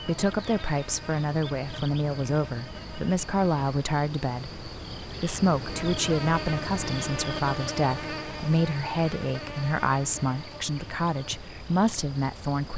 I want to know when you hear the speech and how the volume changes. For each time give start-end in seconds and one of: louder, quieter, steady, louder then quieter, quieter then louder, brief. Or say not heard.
0.1-12.7 steady.